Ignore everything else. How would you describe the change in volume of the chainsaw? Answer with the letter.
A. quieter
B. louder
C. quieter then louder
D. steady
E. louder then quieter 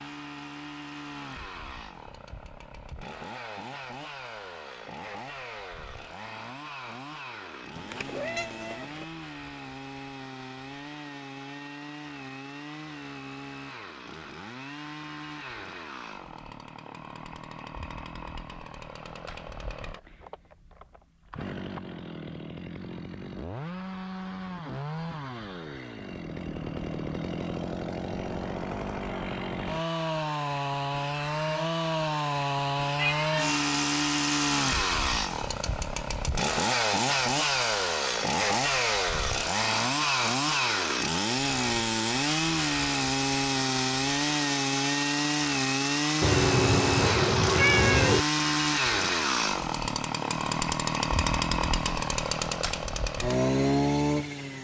B.